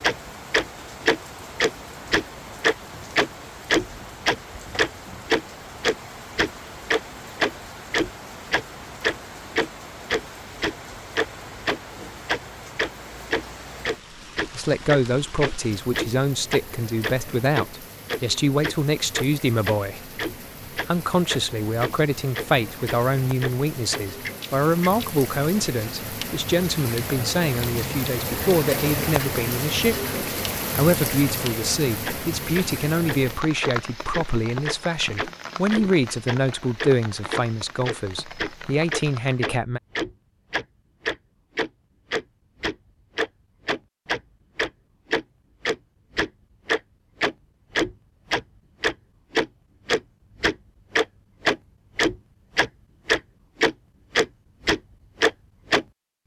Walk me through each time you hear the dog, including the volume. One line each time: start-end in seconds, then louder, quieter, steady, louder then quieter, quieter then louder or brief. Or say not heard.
not heard.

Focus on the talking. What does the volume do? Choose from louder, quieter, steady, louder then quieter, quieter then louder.
steady.